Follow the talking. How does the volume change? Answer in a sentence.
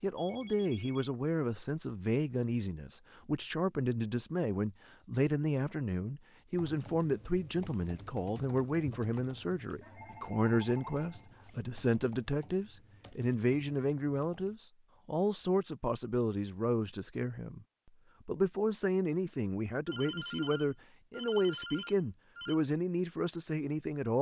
The volume of the talking stays about the same.